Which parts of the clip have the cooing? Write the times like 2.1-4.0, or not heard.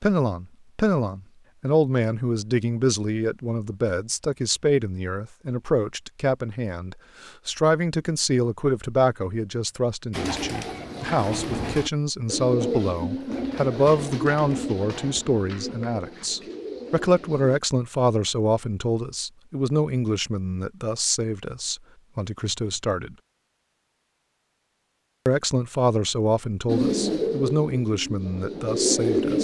10.1-17.6, 26.6-29.4.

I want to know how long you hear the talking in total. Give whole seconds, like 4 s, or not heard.
27 s.